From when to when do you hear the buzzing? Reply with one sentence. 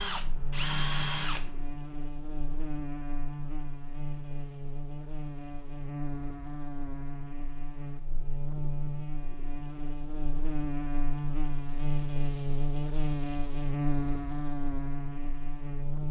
The buzzing can be heard from 0.0 to 16.0 s.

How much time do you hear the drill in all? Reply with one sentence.
You can hear the drill for 2 seconds altogether.